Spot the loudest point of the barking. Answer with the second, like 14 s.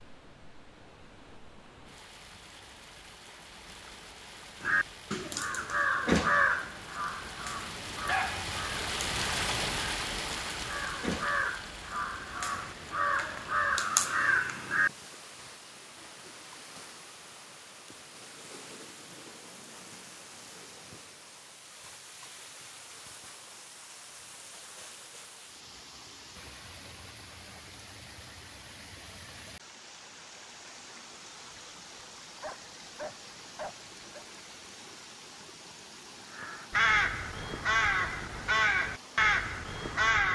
8 s.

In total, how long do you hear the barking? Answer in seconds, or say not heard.
4 s.